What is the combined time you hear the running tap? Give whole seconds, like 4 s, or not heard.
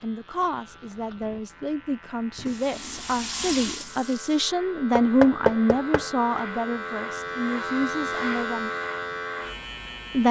2 s.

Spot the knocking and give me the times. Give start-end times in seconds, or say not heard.
5.0-6.0.